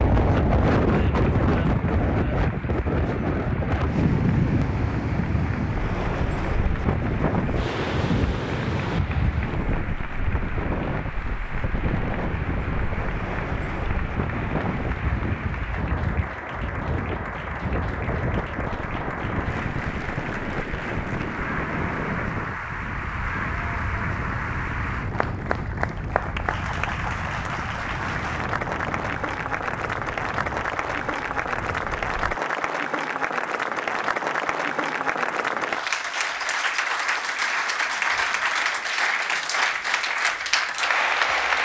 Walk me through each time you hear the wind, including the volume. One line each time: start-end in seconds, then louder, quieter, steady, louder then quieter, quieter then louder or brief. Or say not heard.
0.0-32.4 quieter.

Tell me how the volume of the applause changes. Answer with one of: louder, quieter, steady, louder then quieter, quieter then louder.
louder.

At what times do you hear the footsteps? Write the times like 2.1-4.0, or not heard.
not heard.